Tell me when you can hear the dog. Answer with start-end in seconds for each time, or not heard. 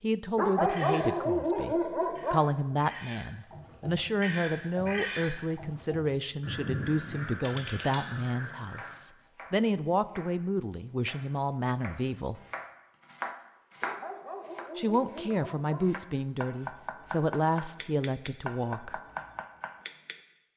0.3-2.4, 13.8-15.8.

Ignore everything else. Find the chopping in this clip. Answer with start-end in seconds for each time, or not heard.
8.6-20.1.